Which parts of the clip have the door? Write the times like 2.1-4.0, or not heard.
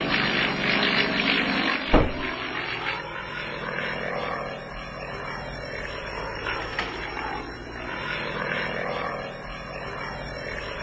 1.9-2.3, 6.5-7.2.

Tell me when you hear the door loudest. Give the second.
2 s.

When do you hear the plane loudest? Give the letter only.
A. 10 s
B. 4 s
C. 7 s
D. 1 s
D.